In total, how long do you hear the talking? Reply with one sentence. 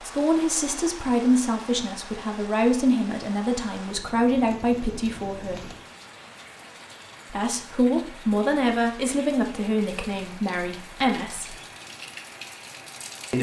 The talking can be heard for 10 seconds in total.